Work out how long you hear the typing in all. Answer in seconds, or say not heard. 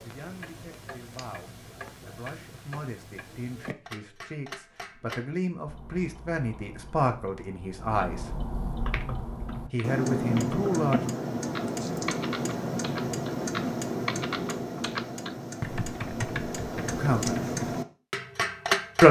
9 s.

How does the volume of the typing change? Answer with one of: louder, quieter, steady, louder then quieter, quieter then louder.
louder.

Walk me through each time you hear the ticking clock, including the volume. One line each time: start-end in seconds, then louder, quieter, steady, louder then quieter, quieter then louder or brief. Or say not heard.
0.0-19.0 louder.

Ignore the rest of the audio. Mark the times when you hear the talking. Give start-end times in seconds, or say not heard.
0.0-8.4, 9.7-11.0, 16.9-17.4.